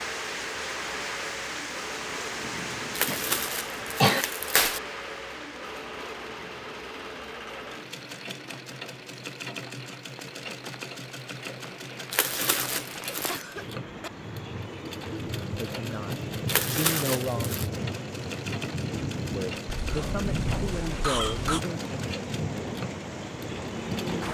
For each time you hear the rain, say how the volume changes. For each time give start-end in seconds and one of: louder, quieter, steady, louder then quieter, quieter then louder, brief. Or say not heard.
0.0-24.2 quieter then louder.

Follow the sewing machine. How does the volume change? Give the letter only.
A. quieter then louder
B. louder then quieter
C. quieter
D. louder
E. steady
E.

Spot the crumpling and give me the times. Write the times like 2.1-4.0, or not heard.
3.0-4.8, 12.1-13.4, 16.4-17.6.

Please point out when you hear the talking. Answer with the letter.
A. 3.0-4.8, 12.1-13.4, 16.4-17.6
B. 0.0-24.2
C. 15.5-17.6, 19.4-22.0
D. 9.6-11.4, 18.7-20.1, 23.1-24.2
C.